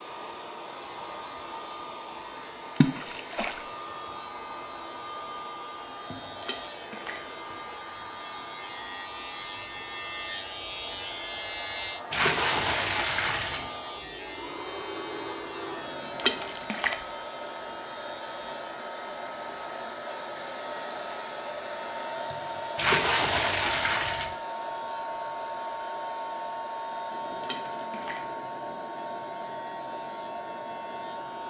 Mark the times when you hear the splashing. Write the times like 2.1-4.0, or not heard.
2.8-3.6, 6.4-7.2, 12.1-13.7, 16.1-16.9, 22.8-24.4, 27.4-28.2.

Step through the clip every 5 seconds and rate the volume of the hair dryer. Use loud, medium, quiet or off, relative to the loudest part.
medium, medium, medium, loud, loud, loud, loud.